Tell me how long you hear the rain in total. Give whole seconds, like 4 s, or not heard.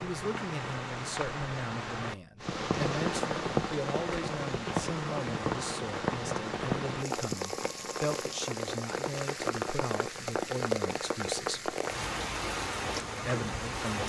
14 s.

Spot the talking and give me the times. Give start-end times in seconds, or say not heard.
0.0-11.8, 13.2-14.0.